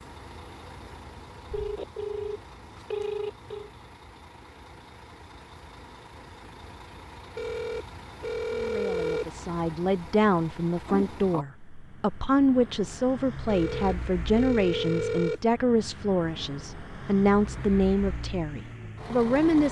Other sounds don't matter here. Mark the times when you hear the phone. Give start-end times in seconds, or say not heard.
1.5-3.7, 7.3-9.3, 13.4-15.4.